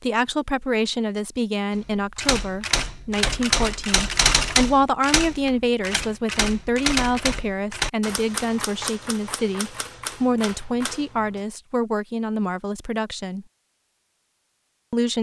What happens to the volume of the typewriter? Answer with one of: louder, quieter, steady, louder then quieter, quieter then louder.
quieter.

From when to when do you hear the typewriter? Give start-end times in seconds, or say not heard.
1.9-11.4.